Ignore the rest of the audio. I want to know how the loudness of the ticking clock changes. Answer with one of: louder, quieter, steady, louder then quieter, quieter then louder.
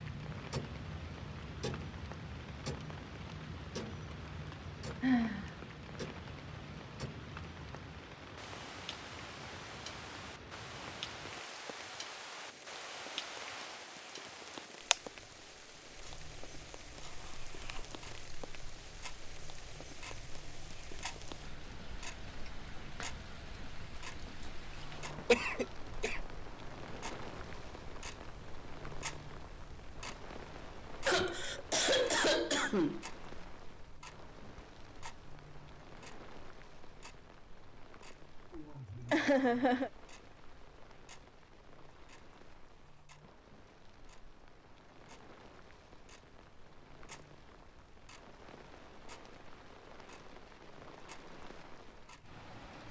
quieter.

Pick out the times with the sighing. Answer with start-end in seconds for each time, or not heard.
5.0-5.5, 31.1-33.0, 38.5-39.9.